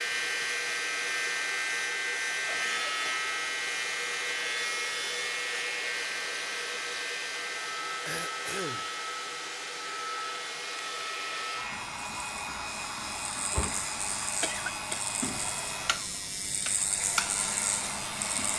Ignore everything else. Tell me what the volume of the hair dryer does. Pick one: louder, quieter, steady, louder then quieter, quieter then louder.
steady.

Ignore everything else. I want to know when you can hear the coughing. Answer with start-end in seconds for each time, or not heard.
2.5-3.3, 8.1-8.8, 14.4-15.0.